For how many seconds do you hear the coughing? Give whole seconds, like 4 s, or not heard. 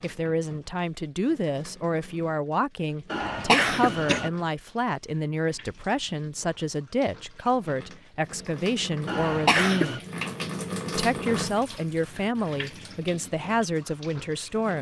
2 s.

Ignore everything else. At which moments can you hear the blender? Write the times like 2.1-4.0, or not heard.
not heard.